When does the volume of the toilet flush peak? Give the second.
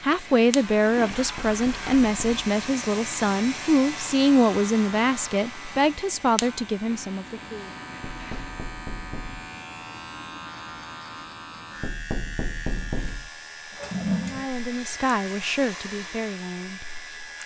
14 s.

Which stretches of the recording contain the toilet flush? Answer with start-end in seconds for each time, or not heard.
0.8-1.9, 6.9-8.6, 13.7-14.4.